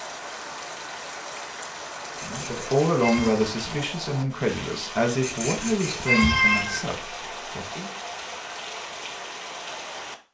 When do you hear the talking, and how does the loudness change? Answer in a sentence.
You can hear the talking from 2.2 to 7.9 s, getting quieter.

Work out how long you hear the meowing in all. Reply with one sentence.
You can hear the meowing for 3 seconds altogether.